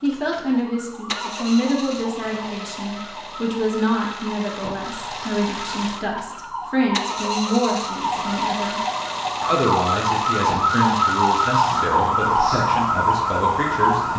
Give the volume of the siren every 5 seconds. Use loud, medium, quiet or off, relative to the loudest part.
quiet, medium, loud.